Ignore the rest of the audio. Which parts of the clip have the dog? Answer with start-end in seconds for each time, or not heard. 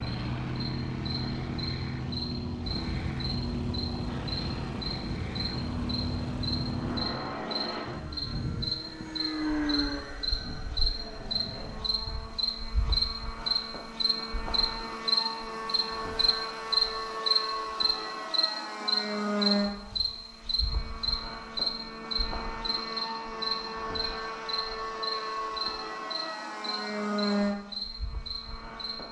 not heard.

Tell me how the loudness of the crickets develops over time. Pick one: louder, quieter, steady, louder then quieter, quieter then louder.
louder then quieter.